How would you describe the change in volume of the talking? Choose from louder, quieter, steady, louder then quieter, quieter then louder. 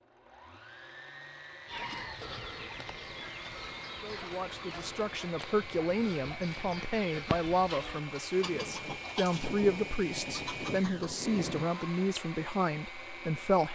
steady.